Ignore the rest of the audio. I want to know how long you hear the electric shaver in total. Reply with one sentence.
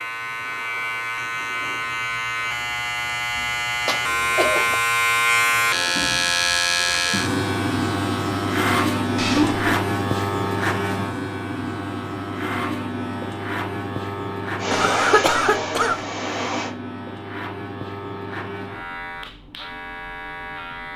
The electric shaver can be heard for 21 seconds in total.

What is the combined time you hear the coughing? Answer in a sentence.
You can hear the coughing for 3 seconds altogether.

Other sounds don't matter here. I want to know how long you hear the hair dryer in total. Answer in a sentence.
The hair dryer can be heard for 2 seconds in total.